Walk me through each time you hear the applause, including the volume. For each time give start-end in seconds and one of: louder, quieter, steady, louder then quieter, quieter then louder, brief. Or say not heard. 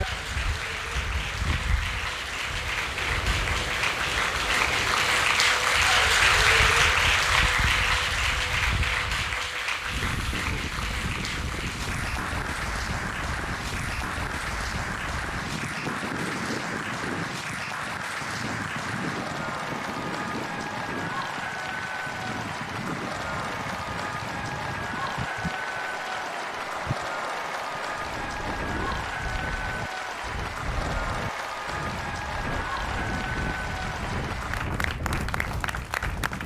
0.0-36.4 quieter.